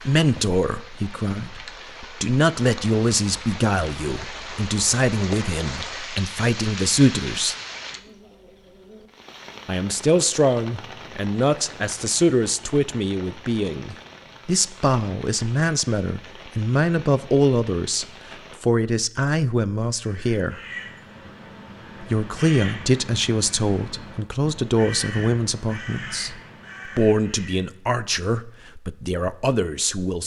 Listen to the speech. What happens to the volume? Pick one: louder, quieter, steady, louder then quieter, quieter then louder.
steady.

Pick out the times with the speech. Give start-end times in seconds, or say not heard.
0.1-7.5, 9.7-20.6, 22.0-30.2.